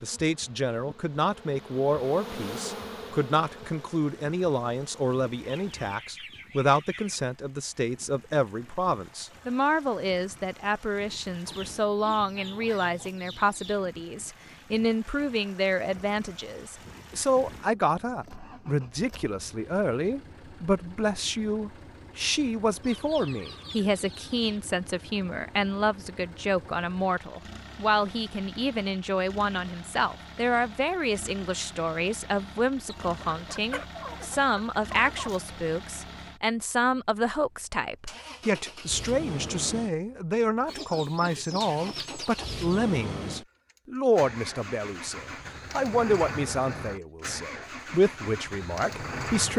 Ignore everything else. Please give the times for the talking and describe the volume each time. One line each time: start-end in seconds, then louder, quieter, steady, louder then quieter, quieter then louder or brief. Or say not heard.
0.0-49.5 steady.